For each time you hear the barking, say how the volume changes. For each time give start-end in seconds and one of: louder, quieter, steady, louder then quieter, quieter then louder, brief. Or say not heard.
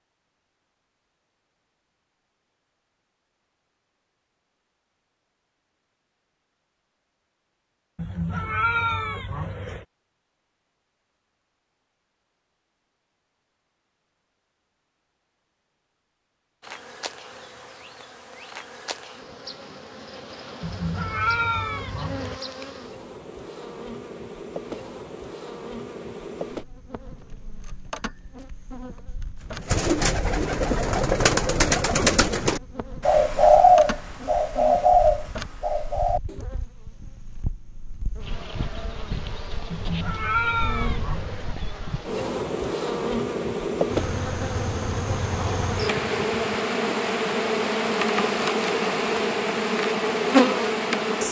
not heard.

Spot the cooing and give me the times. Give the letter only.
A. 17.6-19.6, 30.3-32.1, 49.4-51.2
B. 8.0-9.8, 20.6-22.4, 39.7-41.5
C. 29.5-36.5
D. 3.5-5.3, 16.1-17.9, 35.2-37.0
C.